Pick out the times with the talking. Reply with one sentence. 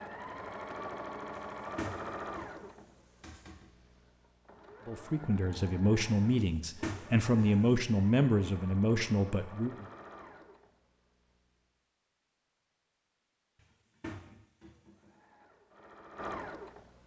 You can hear the talking from 4.8 to 9.8 s.